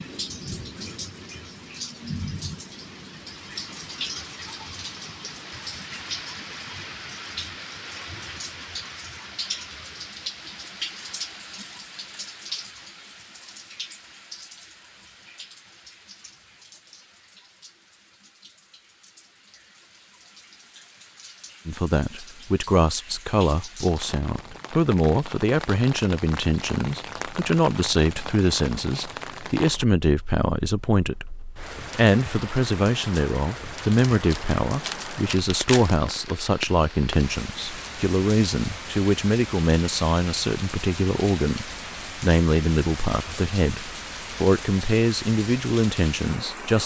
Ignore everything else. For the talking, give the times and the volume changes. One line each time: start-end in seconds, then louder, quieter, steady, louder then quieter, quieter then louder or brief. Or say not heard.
21.6-46.8 steady.